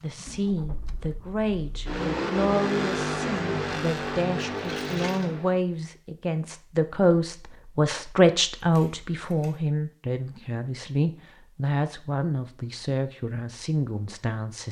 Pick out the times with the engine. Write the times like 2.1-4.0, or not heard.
0.0-5.6.